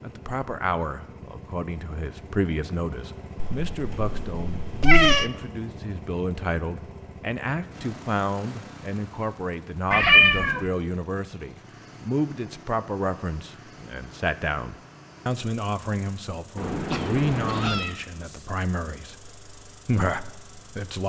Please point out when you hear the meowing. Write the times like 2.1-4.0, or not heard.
3.4-5.3, 9.9-10.7, 16.6-17.9.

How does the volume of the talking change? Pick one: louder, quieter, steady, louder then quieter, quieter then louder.
steady.